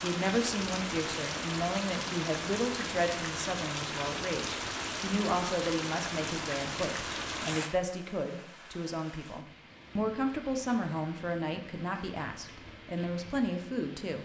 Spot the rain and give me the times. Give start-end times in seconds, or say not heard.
0.0-14.1.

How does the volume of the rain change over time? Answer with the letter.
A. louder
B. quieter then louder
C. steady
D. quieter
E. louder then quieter
D.